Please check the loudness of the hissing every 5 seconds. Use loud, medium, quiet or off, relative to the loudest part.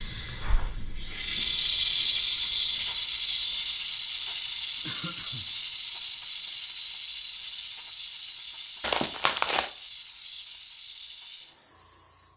loud, medium, quiet.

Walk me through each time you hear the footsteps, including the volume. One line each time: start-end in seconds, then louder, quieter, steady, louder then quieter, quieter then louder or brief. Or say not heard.
not heard.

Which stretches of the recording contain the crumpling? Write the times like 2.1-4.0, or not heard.
8.8-9.7.